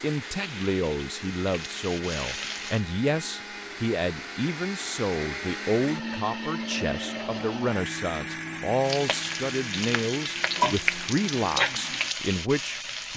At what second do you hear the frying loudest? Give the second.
11 s.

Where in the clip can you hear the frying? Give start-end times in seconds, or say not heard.
0.2-2.9, 8.8-13.1.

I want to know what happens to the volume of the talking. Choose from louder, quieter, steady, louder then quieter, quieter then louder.
steady.